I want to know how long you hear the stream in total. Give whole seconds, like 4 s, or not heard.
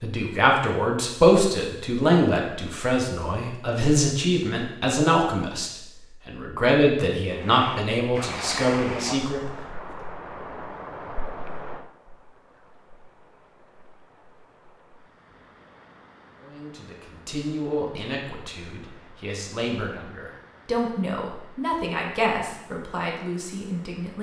17 s.